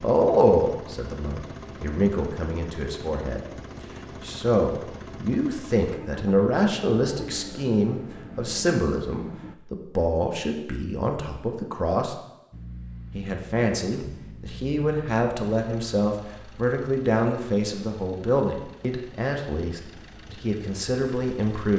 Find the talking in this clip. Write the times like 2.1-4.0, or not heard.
0.0-3.4, 4.2-12.2, 13.1-21.7.